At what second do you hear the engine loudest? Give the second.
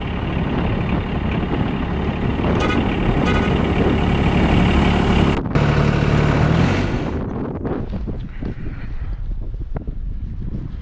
6 s.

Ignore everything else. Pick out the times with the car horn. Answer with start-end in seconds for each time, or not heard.
2.5-3.5.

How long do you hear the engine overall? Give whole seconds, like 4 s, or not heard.
7 s.